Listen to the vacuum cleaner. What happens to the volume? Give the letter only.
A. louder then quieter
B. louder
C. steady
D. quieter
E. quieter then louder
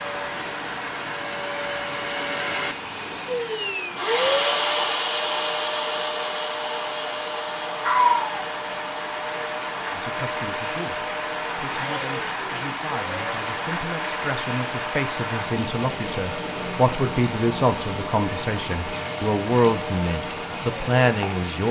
D.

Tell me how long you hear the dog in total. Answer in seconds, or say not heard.
not heard.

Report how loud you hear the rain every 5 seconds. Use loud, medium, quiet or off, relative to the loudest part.
medium, medium, loud, loud, loud.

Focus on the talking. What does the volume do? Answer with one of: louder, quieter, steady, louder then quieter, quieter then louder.
louder.